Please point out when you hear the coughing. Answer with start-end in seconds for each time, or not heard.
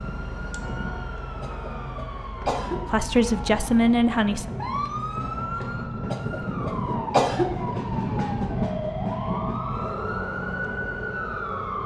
1.4-2.8, 6.1-7.5.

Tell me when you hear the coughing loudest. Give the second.
7 s.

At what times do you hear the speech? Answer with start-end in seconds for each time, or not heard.
2.9-4.5.